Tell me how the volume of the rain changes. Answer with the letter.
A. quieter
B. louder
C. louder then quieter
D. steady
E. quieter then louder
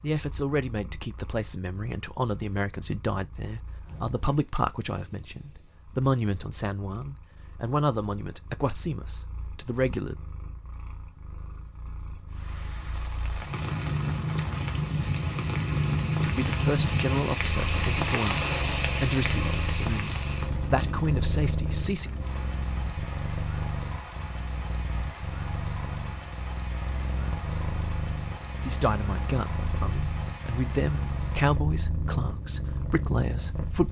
C.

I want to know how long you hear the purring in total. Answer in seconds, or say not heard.
34 s.